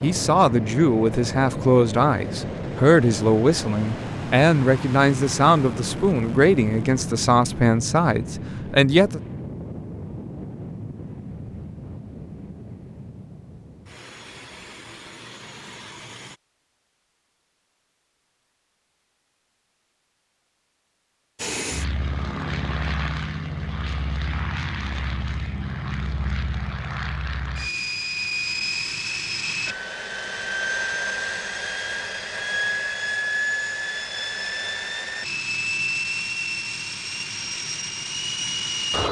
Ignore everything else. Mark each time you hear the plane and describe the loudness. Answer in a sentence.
The plane can be heard from 0.0 to 16.4 s, getting quieter; and from 21.4 to 39.0 s, at a steady volume.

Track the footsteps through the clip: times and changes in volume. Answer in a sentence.
You can't hear the footsteps here.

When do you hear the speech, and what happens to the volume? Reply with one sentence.
You can hear the speech from 0.0 to 9.2 s, at a steady volume.